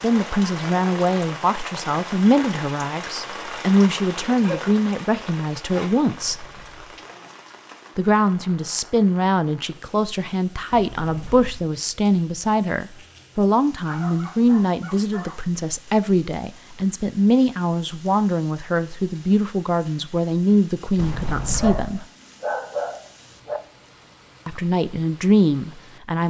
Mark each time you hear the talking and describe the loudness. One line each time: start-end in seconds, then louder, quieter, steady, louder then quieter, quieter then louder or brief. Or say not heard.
0.0-6.5 steady
8.0-22.1 steady
24.4-26.2 brief.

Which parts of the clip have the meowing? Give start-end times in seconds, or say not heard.
not heard.